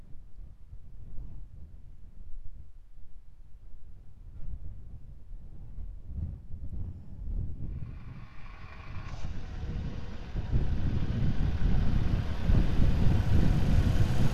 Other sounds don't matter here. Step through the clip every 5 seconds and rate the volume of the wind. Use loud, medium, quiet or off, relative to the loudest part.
quiet, quiet, loud.